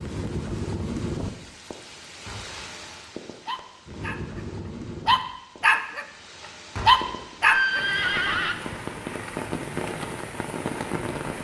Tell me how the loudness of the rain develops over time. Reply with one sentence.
The volume of the rain goes down, then up.